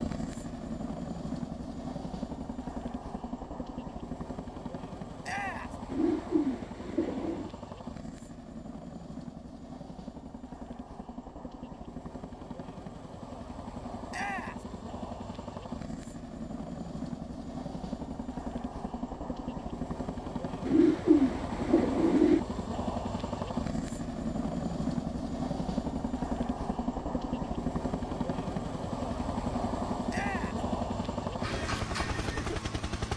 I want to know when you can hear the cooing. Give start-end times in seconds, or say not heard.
5.8-7.5, 20.6-22.4.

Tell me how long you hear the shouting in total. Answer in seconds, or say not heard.
2 s.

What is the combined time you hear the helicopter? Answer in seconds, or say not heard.
33 s.